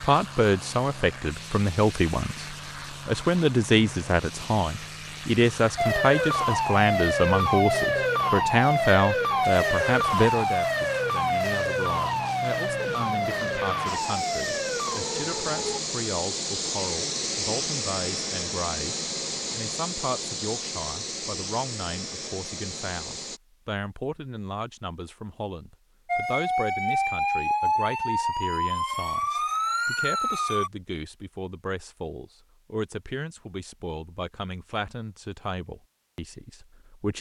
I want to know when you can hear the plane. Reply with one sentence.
You can hear the plane from 0.0 to 23.4 s.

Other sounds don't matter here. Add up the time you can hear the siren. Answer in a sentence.
The siren can be heard for 15 seconds in total.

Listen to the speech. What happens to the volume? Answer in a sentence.
The loudness of the speech goes down.